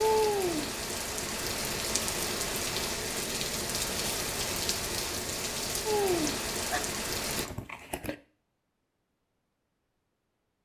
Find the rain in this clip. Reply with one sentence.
The rain can be heard from 0.0 to 7.5 s.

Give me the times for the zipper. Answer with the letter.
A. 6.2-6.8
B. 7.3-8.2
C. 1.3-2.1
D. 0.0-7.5
B.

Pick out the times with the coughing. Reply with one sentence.
The coughing can be heard from 6.2 to 6.8 s.